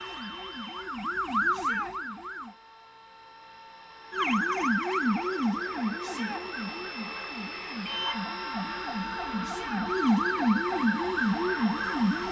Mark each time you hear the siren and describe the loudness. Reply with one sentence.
You can hear the siren briefly from 0.0 to 2.5 s; and from 4.1 to 12.2 s, getting quieter then louder.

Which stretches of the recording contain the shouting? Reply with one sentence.
You can hear the shouting from 1.5 to 1.9 s, from 6.0 to 6.5 s and from 9.4 to 9.8 s.